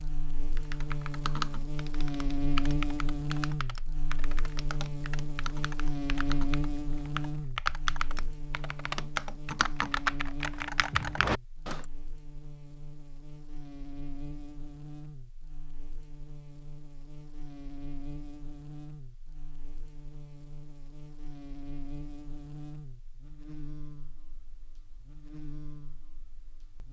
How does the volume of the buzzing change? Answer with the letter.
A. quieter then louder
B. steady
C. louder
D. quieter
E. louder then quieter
D.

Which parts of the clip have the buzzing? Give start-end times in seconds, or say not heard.
0.0-26.8.